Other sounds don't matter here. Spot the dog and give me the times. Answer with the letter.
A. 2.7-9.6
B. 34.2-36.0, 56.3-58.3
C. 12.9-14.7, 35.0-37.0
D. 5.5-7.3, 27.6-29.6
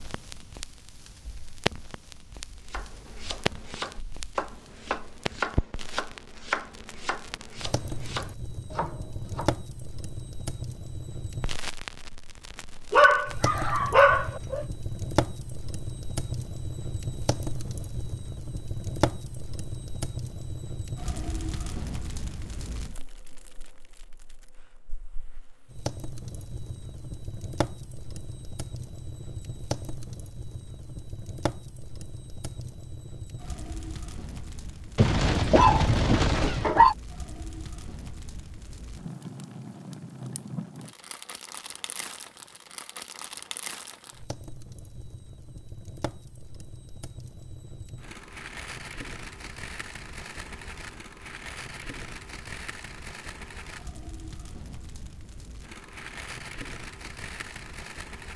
C.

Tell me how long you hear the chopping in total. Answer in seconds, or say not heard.
7 s.